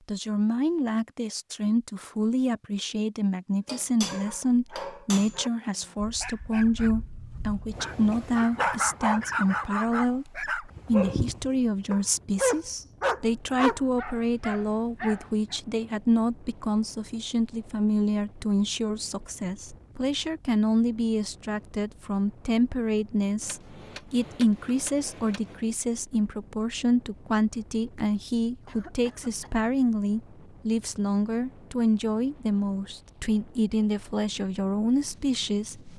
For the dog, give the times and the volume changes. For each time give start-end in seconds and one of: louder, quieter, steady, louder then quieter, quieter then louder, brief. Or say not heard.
4.0-15.6 louder.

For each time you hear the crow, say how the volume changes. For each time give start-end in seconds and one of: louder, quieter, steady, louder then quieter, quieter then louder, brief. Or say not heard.
not heard.